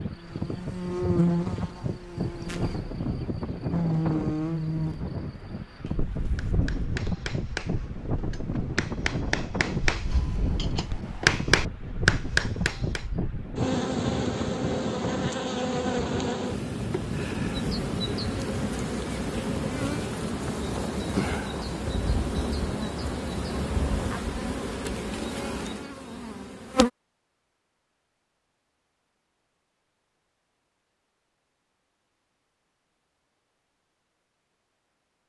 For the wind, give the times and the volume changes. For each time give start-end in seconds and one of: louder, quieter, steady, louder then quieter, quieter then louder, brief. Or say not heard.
0.0-24.4 steady.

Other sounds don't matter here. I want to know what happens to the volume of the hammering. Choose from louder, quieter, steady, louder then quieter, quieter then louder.
louder.